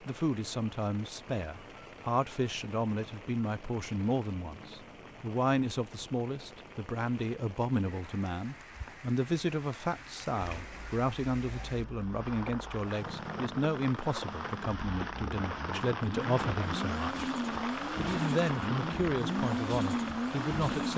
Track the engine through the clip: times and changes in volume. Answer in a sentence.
You can hear the engine from 10.4 to 20.9 s, getting louder.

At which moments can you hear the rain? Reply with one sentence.
You can hear the rain from 0.0 to 20.9 s.